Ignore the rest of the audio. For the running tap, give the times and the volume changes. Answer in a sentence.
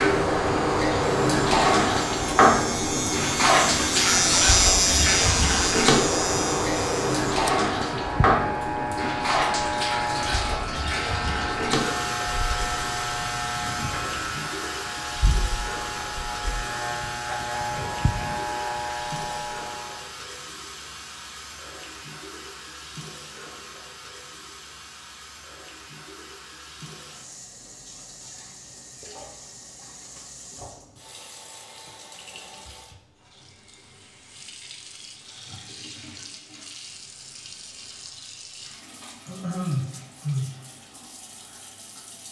The running tap can be heard from 0.0 to 42.2 s, getting quieter.